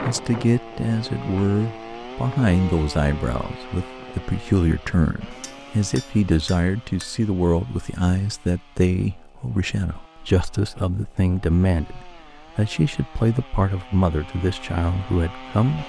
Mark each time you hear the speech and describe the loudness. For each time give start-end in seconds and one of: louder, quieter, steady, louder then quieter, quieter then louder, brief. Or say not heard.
0.0-15.8 steady.